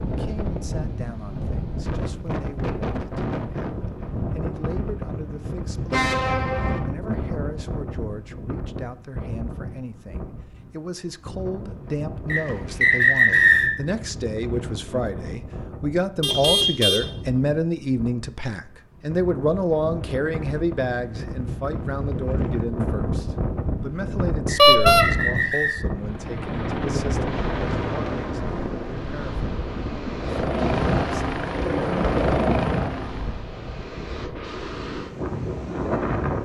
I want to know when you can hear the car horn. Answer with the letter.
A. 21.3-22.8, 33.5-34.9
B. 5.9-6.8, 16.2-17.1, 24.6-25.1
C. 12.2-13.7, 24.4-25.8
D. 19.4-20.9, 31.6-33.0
B.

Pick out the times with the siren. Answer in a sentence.
The siren can't be heard in this clip.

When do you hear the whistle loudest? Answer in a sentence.
The loudest moment of the whistle is at 13 seconds.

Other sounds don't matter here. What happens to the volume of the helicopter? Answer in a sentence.
The volume of the helicopter goes down, then up.